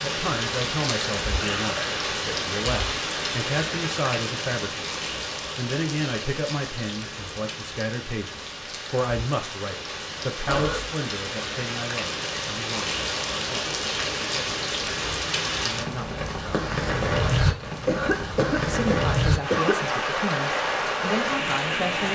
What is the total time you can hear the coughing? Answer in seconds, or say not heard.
3 s.